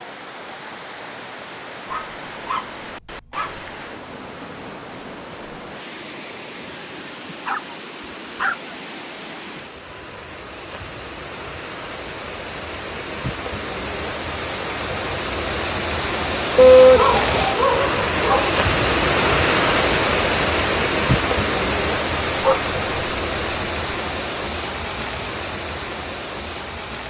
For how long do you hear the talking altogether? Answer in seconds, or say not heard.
not heard.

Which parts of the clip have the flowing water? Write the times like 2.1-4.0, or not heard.
0.0-27.0.